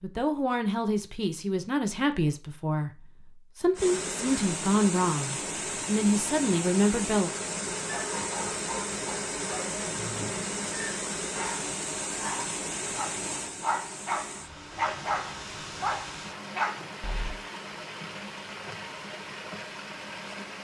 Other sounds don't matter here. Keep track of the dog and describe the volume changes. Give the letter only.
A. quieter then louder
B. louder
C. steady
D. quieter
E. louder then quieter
B.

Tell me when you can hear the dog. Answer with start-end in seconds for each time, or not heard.
7.8-17.4.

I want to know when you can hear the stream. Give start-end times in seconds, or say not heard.
3.8-20.5.